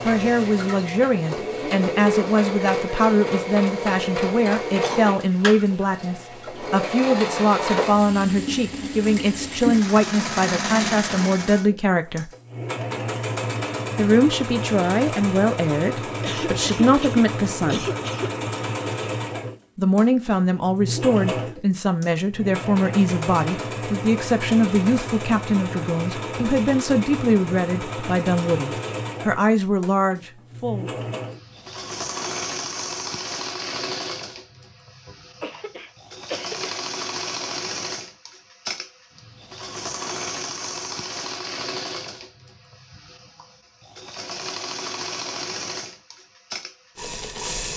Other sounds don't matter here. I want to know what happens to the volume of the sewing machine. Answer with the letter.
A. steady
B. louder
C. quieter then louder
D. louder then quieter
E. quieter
E.